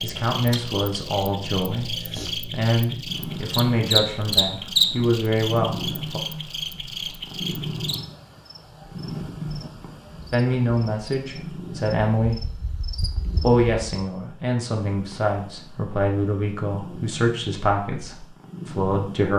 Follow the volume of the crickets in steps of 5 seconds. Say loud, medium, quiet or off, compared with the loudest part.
loud, medium, quiet, off.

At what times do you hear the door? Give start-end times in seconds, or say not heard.
not heard.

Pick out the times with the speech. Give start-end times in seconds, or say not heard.
0.0-6.2, 10.3-12.7, 13.4-19.3.